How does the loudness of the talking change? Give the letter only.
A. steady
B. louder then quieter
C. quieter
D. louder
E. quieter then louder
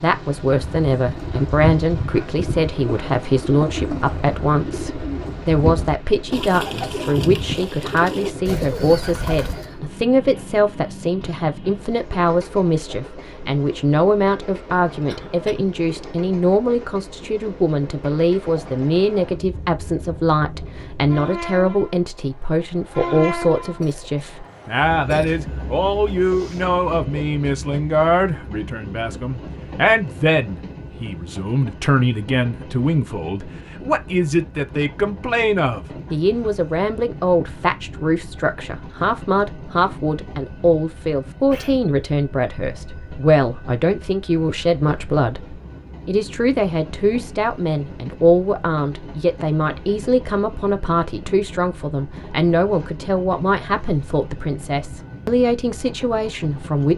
A.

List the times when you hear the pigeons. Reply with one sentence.
The pigeons can be heard from 0.5 to 9.8 s.